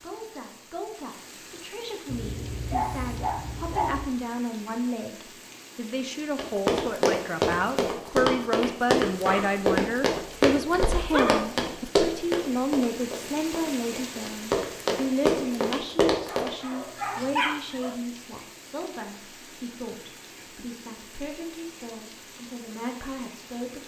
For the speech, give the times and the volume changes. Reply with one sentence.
You can hear the speech from 0.0 to 23.8 s, getting louder then quieter.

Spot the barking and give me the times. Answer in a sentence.
The barking can be heard from 2.0 to 4.1 s, from 9.2 to 9.7 s, from 10.7 to 11.4 s and from 16.2 to 18.0 s.